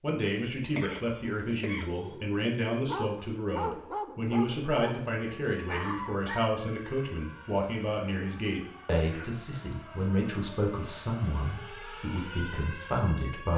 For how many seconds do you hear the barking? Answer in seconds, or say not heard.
5 s.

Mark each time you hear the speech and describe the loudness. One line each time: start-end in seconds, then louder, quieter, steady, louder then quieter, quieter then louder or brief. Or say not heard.
0.0-13.5 steady.